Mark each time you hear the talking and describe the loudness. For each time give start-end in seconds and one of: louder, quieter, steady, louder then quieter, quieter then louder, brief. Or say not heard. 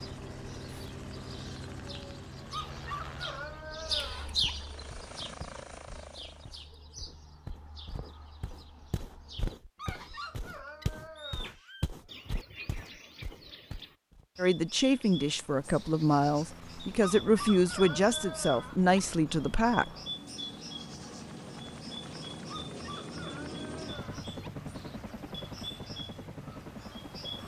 14.3-19.9 steady.